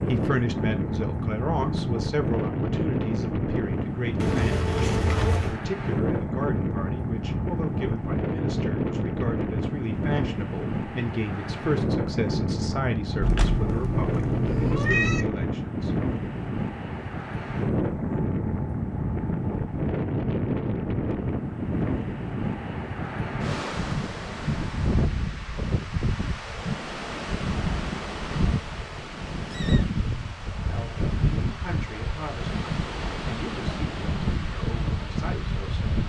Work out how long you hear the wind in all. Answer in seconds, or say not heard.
36 s.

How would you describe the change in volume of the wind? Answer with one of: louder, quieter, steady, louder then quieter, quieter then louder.
steady.